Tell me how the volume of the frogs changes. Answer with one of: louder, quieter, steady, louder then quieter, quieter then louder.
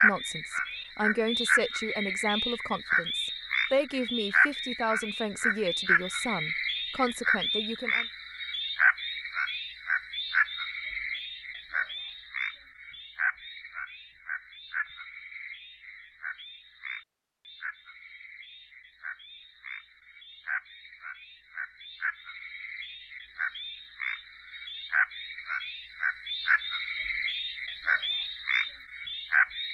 quieter then louder.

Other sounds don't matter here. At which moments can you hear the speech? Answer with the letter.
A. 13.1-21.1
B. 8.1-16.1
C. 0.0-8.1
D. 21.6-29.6
C.